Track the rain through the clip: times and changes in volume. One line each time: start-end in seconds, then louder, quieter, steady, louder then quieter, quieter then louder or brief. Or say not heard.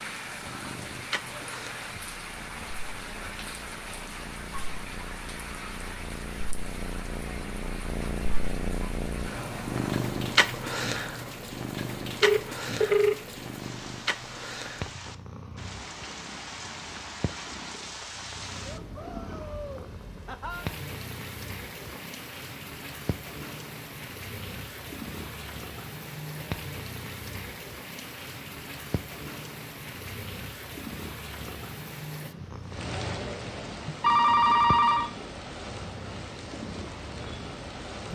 0.0-38.1 steady.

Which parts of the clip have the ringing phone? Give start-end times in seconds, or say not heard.
12.2-13.2, 33.9-35.1.